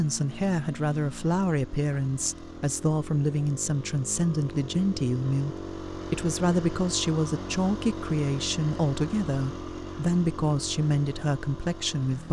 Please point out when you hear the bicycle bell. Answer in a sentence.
You can't hear the bicycle bell here.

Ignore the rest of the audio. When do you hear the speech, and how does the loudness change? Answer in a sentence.
You can hear the speech from 0.0 to 12.2 s, at a steady volume.